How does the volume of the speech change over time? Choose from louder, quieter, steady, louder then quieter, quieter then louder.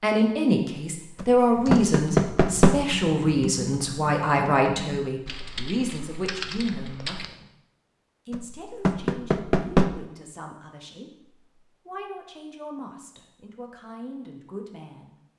quieter.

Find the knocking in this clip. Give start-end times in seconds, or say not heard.
1.2-2.8, 8.3-9.9.